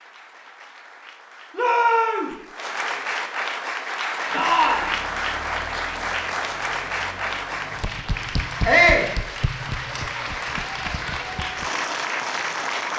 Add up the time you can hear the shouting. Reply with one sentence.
You can hear the shouting for 2 seconds altogether.